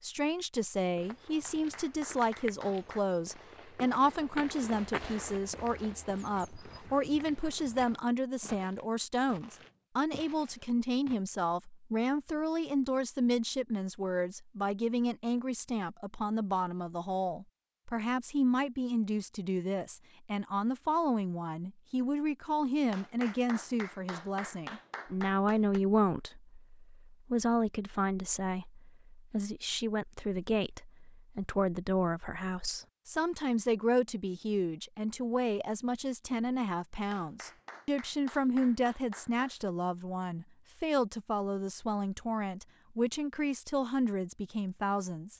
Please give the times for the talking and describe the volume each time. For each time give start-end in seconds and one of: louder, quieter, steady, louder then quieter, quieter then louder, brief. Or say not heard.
0.0-45.3 steady.